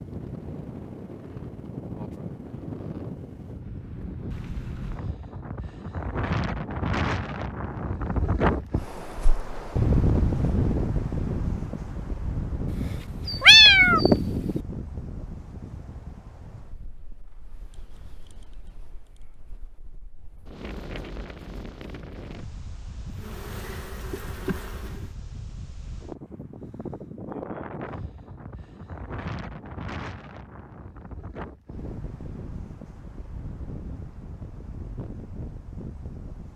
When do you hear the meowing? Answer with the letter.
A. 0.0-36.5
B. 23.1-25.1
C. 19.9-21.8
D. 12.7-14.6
D.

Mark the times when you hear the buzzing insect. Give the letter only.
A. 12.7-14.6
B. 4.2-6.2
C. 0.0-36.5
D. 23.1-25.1
D.